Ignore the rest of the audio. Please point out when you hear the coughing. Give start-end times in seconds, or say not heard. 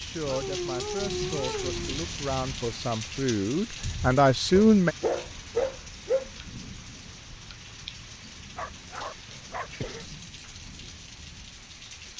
9.2-10.2.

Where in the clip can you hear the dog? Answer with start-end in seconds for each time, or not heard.
0.2-1.9, 4.5-6.3, 8.6-9.7.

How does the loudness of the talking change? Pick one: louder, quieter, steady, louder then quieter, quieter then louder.
louder.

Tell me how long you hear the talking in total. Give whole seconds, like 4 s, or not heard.
5 s.